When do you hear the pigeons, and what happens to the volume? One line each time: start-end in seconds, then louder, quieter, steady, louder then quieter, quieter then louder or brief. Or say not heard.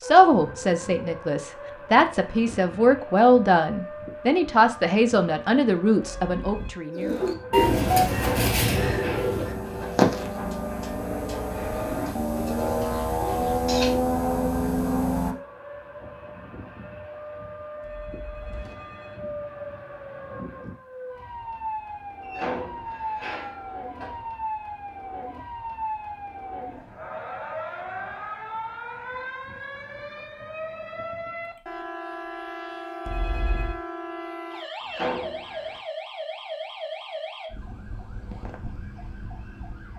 7.0-14.0 quieter then louder.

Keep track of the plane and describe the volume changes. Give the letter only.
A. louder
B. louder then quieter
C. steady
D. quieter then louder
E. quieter
A.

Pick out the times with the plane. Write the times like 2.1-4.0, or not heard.
7.5-15.3.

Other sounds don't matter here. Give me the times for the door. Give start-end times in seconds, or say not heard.
8.1-10.7, 22.2-24.2, 34.8-35.8.